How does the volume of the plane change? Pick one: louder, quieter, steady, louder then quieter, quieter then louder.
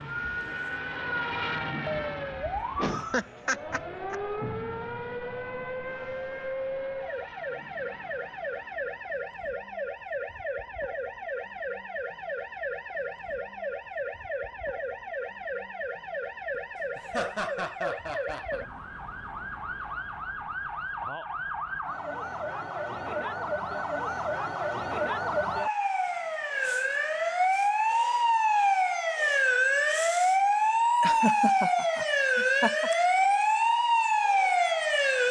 quieter.